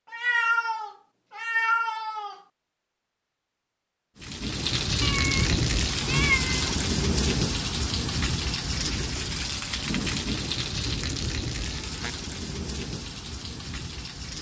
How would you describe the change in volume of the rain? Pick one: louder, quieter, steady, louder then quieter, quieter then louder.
quieter.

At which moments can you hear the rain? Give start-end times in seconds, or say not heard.
4.2-14.3.